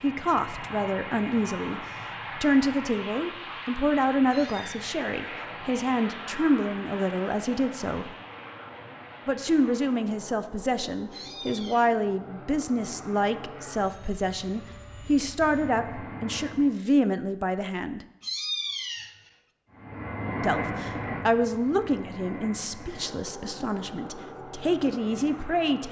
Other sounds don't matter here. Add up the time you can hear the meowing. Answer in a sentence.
You can hear the meowing for 2 seconds altogether.